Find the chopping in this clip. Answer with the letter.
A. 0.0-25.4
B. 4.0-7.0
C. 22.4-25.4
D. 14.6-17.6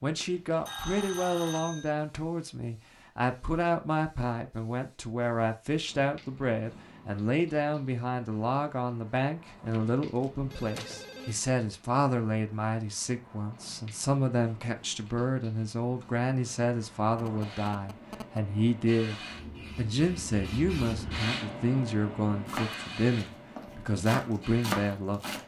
C.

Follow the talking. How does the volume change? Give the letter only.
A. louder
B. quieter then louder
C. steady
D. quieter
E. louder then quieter
C.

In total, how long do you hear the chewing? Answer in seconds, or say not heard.
not heard.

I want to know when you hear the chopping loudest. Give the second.
25 s.